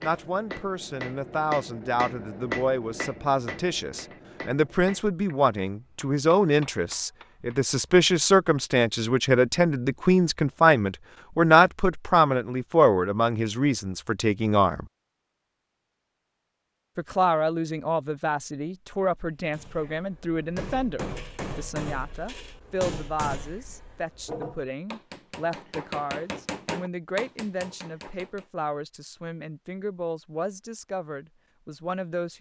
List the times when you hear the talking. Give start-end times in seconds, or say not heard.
0.0-14.8, 16.9-32.3.